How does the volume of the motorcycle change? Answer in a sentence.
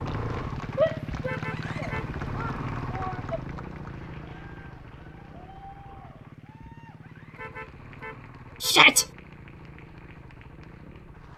The volume of the motorcycle goes down.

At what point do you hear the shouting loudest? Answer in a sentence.
The loudest moment of the shouting is at 9 seconds.